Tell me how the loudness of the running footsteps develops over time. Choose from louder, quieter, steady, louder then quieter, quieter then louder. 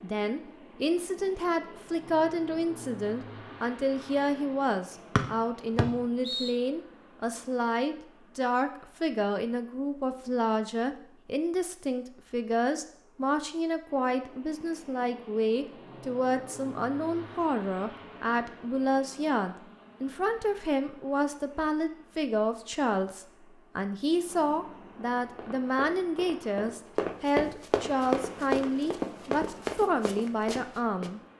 louder then quieter.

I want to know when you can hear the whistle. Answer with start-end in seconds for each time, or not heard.
5.2-6.5.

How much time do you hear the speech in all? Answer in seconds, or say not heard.
31 s.